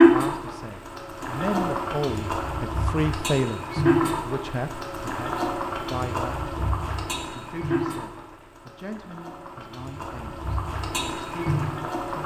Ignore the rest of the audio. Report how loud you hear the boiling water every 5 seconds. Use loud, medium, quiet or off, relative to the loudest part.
loud, medium, medium.